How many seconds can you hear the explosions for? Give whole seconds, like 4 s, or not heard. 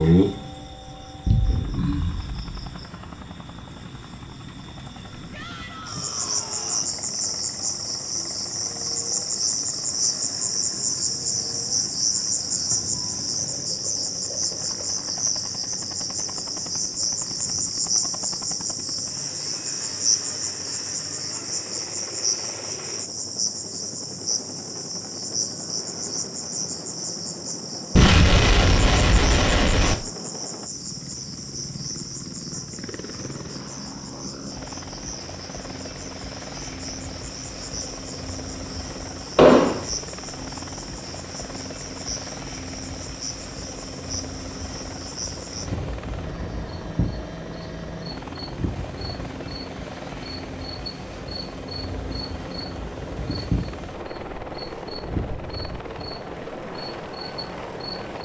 4 s.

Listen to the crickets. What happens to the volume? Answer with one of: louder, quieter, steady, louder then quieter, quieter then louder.
quieter.